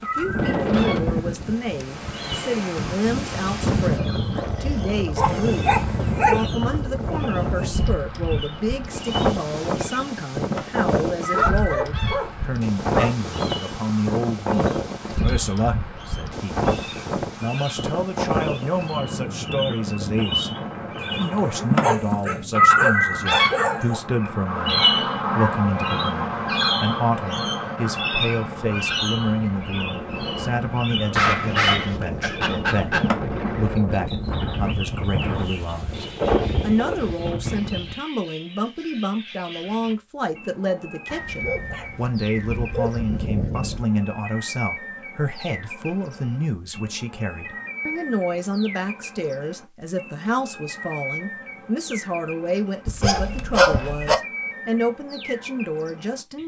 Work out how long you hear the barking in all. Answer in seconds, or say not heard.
12 s.